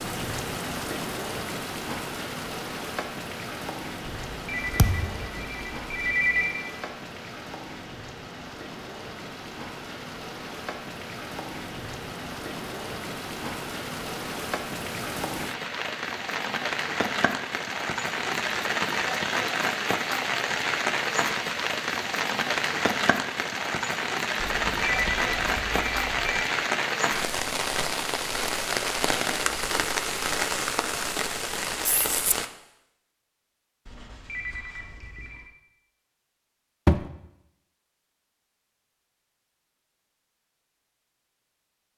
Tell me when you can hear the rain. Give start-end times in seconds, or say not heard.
0.0-32.5.